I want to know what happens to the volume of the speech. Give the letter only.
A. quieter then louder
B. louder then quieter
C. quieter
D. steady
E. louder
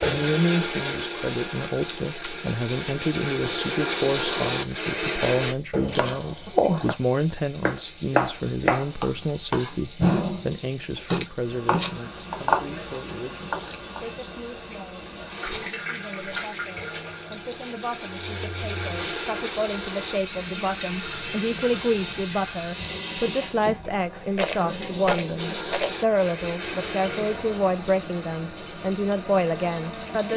A.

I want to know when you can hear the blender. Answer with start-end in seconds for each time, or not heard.
0.0-5.5, 15.3-22.2, 25.4-30.3.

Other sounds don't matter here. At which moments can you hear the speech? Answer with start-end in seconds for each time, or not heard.
0.1-30.3.